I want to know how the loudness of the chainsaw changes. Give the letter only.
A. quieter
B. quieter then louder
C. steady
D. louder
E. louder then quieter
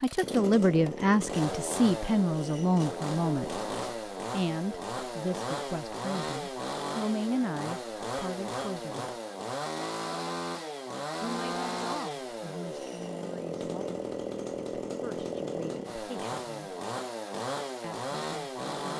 C.